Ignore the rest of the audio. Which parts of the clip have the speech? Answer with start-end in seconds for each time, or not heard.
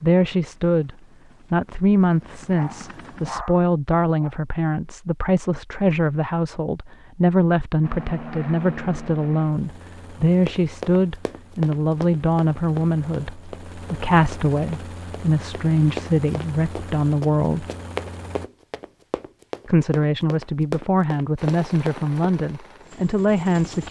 0.0-0.9, 1.5-17.6, 19.6-23.8.